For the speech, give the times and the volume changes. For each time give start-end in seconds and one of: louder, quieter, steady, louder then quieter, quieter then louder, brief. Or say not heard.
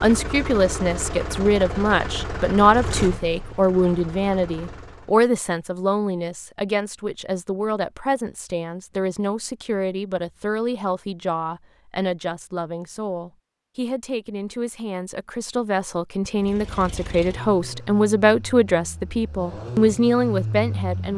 0.0-21.1 quieter then louder.